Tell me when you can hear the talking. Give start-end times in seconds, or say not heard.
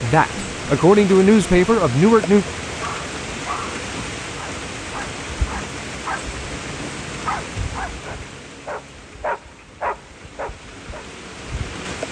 0.0-2.5.